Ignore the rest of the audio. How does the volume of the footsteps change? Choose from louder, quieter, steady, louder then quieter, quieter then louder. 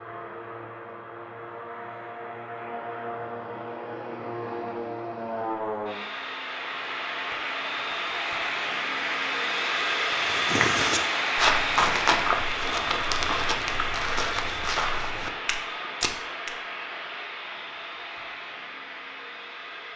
quieter.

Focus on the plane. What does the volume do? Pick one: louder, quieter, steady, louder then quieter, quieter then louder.
louder then quieter.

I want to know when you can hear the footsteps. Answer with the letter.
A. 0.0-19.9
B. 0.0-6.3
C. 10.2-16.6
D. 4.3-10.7
C.